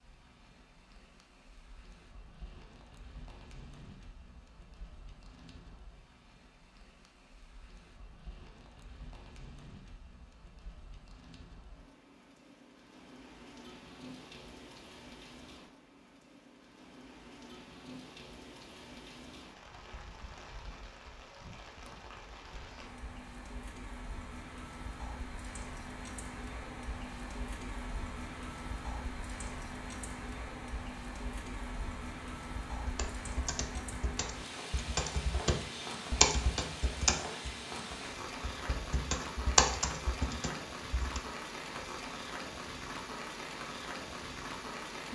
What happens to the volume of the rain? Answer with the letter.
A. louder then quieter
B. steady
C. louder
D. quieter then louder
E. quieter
C.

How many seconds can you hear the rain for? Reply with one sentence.
The rain can be heard for 45 seconds in total.